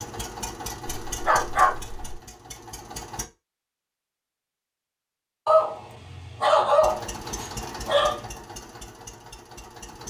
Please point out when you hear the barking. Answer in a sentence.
You can hear the barking from 1.1 to 2.1 s and from 5.5 to 8.2 s.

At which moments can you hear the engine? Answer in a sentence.
The engine can be heard from 0.0 to 3.2 s and from 6.8 to 10.0 s.